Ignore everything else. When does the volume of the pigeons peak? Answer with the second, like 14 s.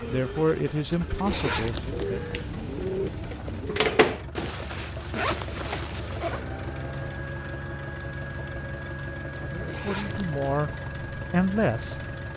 3 s.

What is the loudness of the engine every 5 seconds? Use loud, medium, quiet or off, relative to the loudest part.
medium, loud, loud.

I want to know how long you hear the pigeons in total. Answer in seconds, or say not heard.
4 s.